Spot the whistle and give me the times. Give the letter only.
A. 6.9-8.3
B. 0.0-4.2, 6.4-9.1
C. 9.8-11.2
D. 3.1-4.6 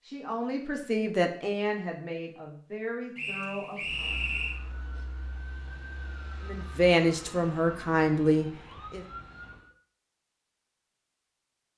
D.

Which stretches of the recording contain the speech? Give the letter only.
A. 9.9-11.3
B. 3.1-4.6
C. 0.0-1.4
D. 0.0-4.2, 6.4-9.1
D.